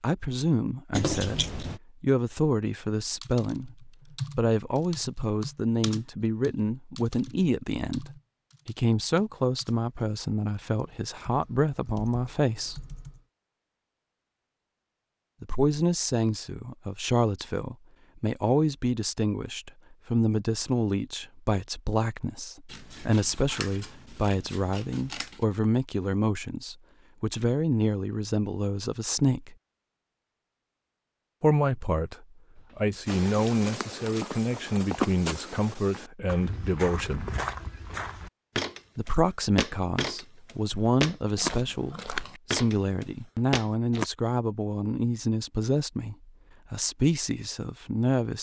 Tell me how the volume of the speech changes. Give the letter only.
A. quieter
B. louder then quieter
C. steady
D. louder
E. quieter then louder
C.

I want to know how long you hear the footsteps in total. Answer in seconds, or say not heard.
11 s.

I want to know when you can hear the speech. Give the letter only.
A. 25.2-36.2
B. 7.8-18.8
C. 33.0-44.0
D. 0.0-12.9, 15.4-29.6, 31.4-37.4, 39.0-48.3
D.